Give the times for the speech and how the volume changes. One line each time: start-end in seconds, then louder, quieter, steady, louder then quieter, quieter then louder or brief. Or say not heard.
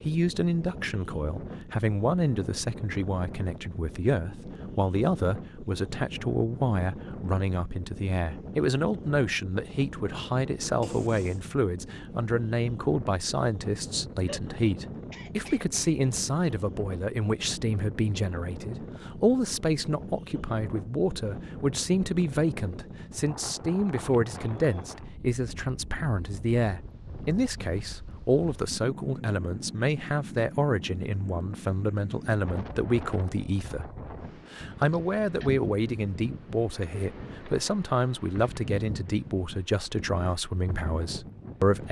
0.0-41.8 steady.